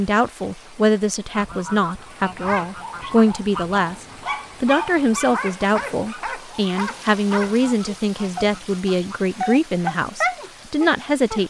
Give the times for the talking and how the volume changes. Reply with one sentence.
You can hear the talking from 0.0 to 11.4 s, at a steady volume.